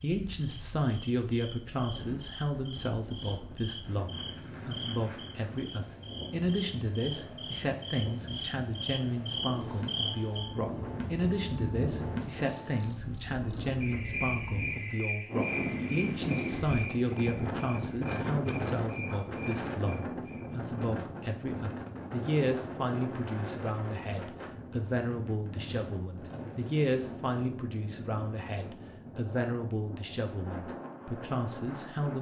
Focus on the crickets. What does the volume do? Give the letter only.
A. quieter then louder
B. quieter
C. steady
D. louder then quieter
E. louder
D.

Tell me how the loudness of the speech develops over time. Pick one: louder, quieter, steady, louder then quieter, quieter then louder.
steady.